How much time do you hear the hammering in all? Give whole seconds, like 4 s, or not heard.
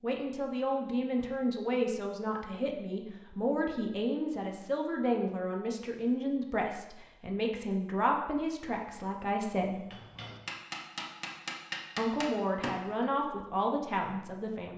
3 s.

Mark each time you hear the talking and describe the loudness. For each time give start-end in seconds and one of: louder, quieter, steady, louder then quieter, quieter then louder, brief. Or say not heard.
0.0-9.8 steady
11.9-14.7 brief.